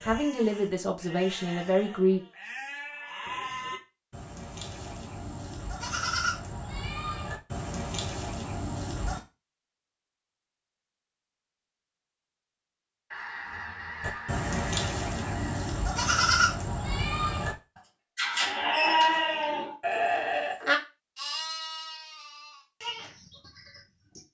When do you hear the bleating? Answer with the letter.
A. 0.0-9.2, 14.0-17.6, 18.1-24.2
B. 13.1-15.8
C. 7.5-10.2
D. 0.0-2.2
A.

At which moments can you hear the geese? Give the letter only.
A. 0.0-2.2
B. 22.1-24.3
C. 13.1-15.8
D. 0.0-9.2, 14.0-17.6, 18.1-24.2
C.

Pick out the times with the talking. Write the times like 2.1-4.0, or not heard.
0.0-2.2.